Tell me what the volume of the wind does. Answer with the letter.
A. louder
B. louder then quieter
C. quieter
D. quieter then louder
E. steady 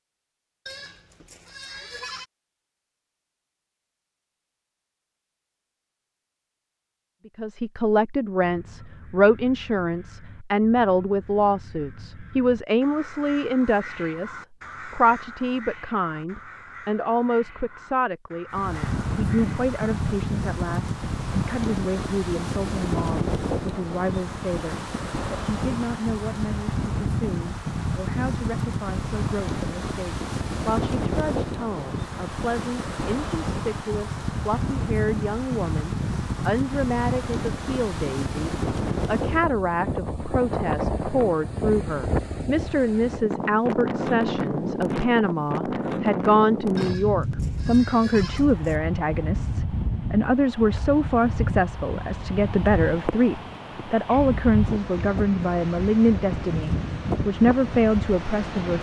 E.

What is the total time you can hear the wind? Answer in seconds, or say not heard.
40 s.